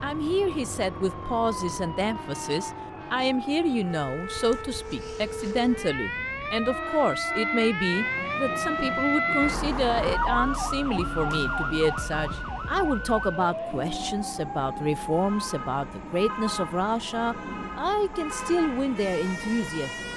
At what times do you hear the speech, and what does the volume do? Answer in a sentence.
The speech can be heard from 0.0 to 20.1 s, at a steady volume.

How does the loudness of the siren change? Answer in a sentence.
The loudness of the siren goes up, then down.